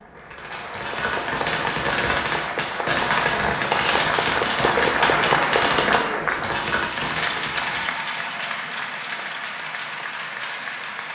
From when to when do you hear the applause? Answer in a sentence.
The applause can be heard from 0.0 to 11.1 s.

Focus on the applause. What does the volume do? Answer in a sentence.
The loudness of the applause goes up, then down.